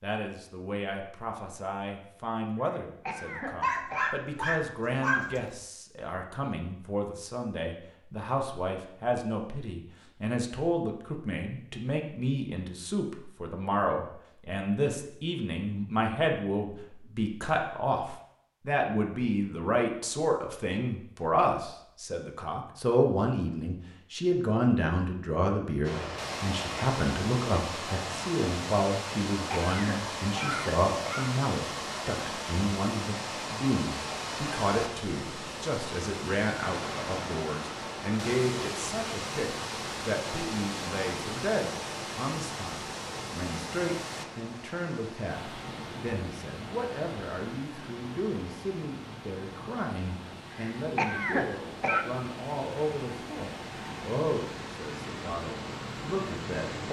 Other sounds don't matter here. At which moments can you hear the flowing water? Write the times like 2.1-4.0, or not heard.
25.8-56.8.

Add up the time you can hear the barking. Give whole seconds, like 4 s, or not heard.
2 s.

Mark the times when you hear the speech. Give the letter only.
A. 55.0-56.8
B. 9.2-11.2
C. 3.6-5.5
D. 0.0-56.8
D.